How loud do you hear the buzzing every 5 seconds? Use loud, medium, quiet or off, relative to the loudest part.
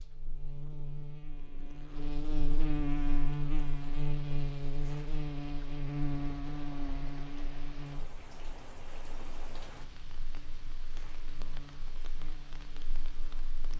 loud, loud, quiet.